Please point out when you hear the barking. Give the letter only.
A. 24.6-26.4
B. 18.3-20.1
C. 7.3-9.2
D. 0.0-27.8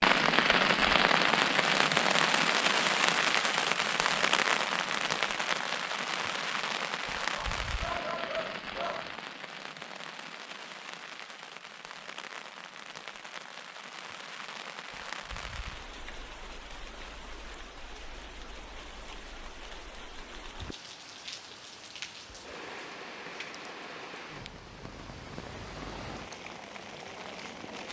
C.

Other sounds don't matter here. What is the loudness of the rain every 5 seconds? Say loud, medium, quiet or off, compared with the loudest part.
loud, medium, quiet, quiet, quiet, quiet.